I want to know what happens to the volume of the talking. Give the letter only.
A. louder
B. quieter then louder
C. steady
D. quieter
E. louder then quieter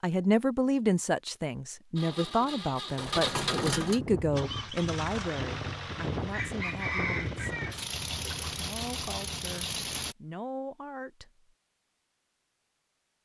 D.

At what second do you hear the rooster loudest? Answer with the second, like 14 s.
7 s.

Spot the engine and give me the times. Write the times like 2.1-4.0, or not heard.
1.9-10.2.